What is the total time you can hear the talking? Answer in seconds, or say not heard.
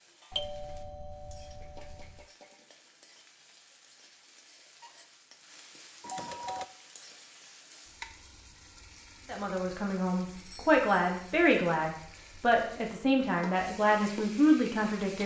6 s.